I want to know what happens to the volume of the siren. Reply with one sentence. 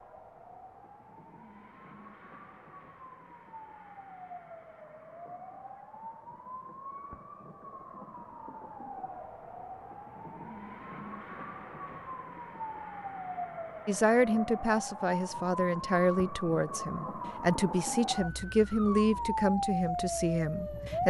The loudness of the siren goes up.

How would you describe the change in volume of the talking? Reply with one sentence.
The volume of the talking stays about the same.